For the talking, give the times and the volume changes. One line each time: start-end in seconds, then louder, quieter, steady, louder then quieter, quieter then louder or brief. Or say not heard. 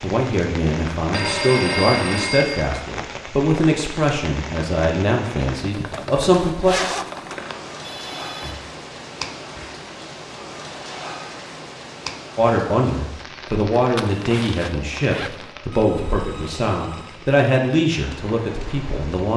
0.0-6.8 steady
12.3-19.3 steady.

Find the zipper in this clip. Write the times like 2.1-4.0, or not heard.
5.8-7.5, 13.8-15.5.